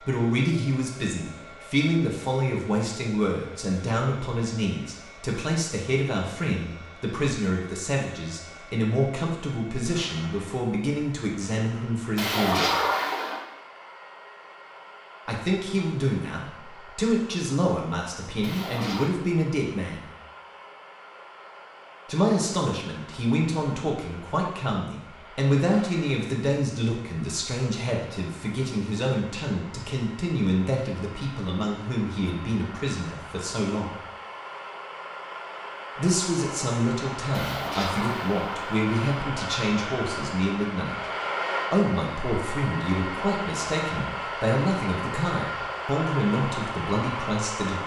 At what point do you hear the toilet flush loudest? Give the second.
13 s.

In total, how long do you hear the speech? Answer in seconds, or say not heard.
41 s.